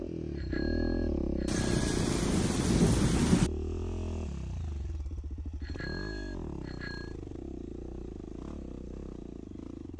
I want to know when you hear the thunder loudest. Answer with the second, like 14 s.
3 s.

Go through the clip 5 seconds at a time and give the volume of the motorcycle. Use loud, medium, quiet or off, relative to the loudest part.
loud, medium.